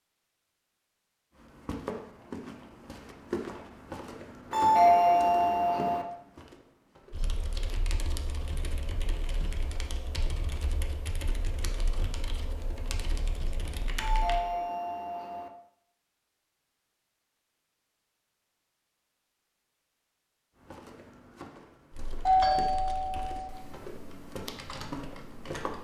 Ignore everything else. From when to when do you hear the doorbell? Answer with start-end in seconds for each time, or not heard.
4.5-6.0, 13.9-15.5, 22.2-23.5.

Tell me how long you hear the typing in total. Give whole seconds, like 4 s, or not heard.
11 s.